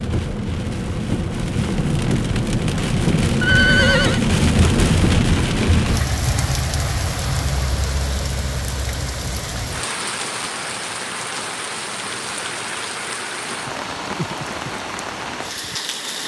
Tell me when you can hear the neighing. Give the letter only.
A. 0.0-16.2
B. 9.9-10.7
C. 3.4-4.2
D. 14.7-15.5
C.